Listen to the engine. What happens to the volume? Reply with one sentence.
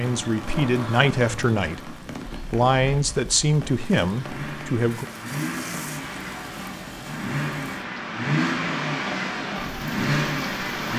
The loudness of the engine goes up.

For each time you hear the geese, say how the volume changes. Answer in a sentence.
You can't hear the geese here.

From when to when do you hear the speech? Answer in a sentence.
You can hear the speech from 0.0 to 5.0 s.